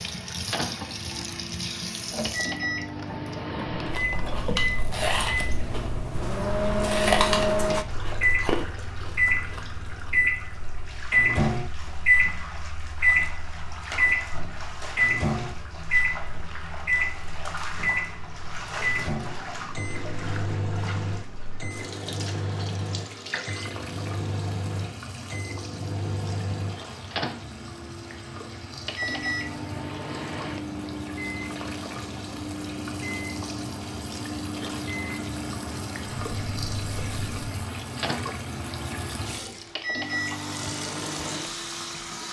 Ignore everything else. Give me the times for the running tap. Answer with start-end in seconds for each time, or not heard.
0.0-42.2.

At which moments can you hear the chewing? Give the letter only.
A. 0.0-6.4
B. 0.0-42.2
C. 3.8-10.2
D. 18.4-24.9
C.